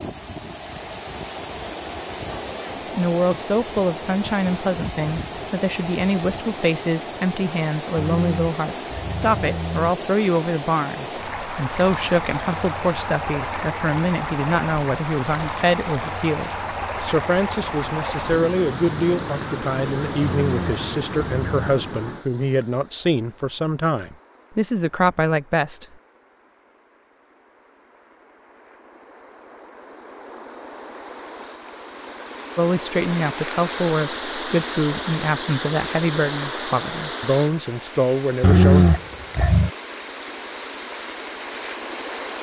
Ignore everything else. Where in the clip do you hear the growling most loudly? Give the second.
39 s.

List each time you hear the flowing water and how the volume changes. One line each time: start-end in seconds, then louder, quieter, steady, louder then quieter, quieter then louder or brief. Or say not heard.
0.0-42.3 quieter then louder.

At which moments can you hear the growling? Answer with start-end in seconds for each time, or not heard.
8.0-9.9, 20.2-21.8, 38.4-39.7.